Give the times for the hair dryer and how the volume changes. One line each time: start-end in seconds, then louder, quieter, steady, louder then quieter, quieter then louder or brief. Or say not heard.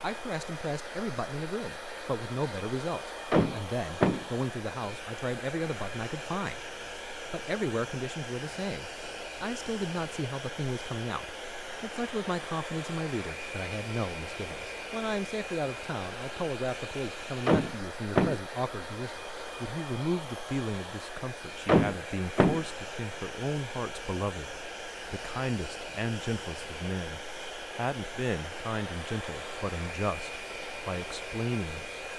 0.0-32.1 steady.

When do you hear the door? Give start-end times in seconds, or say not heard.
3.3-4.2, 17.4-18.4, 21.6-22.6.